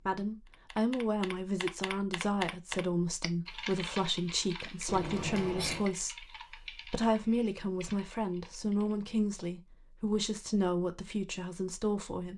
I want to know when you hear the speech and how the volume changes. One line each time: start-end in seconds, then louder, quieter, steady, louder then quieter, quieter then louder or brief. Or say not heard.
0.1-12.3 steady.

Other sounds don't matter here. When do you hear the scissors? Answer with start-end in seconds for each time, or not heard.
4.8-5.9.